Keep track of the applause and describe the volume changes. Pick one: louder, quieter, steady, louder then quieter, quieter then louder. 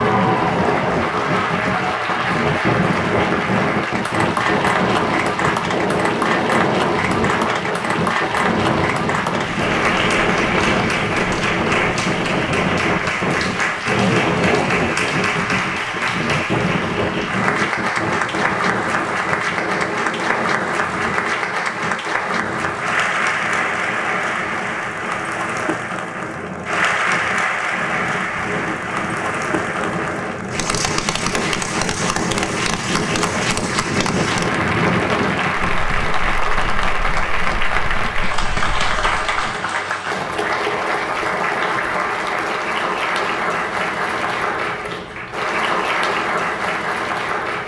steady.